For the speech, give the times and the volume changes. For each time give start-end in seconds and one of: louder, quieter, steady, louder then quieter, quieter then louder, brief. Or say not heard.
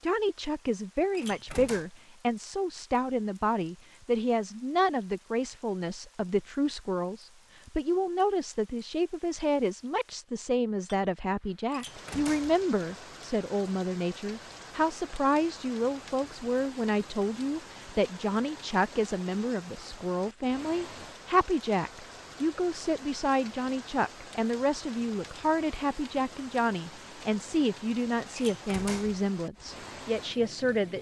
0.0-30.9 steady.